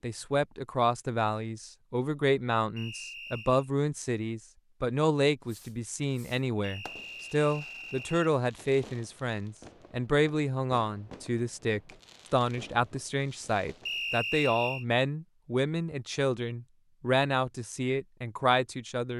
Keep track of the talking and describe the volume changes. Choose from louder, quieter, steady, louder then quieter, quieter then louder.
steady.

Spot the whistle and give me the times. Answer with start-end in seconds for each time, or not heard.
2.8-3.7, 6.6-8.3, 13.8-14.8.